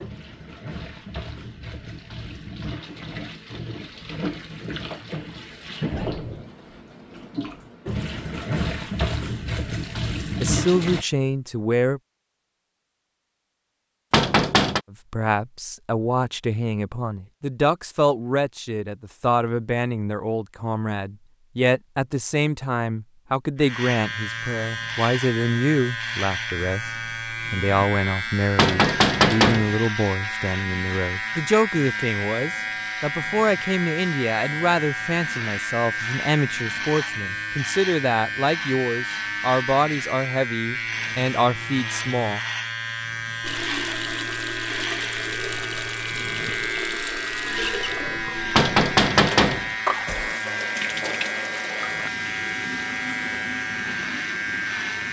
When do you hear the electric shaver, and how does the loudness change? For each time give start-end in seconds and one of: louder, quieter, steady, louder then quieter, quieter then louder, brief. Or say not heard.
23.6-55.0 steady.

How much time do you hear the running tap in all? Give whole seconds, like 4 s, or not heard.
23 s.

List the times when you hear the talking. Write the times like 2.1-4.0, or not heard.
10.4-12.0, 14.9-42.4.